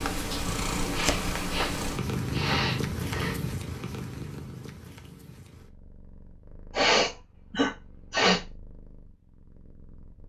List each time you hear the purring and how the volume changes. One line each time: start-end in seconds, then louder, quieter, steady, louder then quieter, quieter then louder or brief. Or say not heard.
0.0-10.2 quieter.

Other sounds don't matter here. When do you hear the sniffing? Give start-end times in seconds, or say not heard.
0.9-3.4, 6.8-8.4.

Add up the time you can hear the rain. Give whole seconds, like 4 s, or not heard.
not heard.